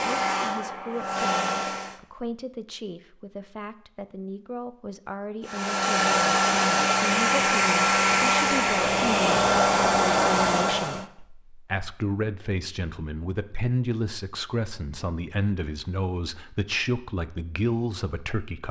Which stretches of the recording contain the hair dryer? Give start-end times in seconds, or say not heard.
0.0-2.0, 5.5-11.1.